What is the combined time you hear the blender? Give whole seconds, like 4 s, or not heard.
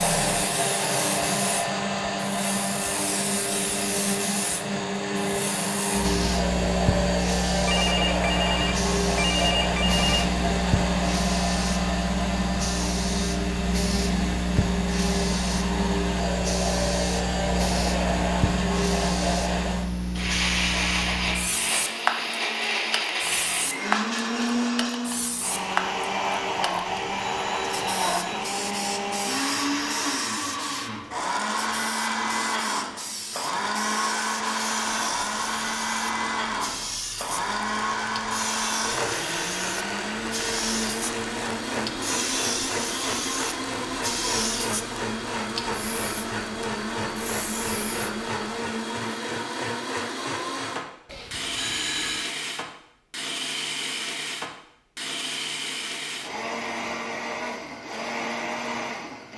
59 s.